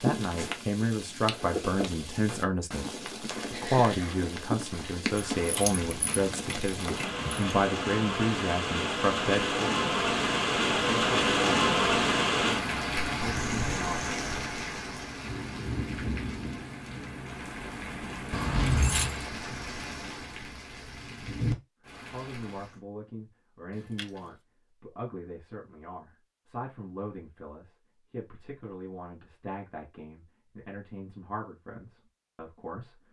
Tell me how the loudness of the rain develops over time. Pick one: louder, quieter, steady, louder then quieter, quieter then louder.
louder then quieter.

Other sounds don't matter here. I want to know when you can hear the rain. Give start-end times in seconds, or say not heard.
0.0-22.8.